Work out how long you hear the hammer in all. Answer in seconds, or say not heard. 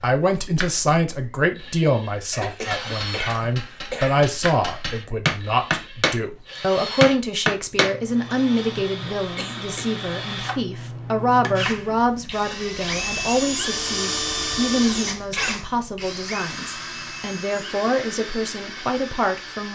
5 s.